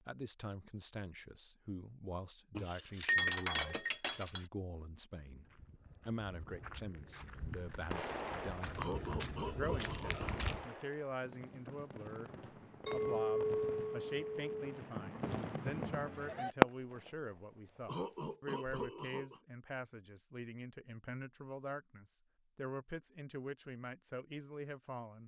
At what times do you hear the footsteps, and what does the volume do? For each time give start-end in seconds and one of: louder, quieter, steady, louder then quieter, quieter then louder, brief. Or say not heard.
5.2-10.7 louder.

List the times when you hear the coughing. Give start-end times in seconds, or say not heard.
8.8-10.4, 17.9-19.4.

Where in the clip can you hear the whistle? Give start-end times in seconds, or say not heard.
not heard.